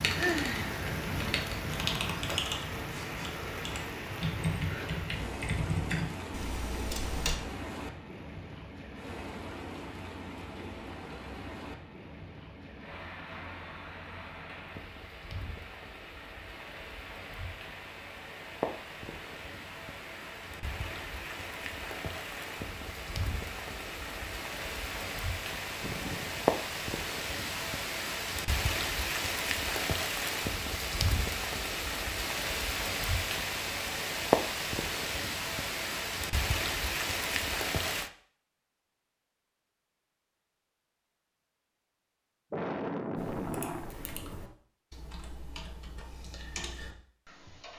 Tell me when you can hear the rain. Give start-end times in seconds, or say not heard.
0.0-38.1.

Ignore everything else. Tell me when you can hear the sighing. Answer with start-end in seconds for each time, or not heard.
0.1-0.8, 25.8-26.6, 42.5-44.1.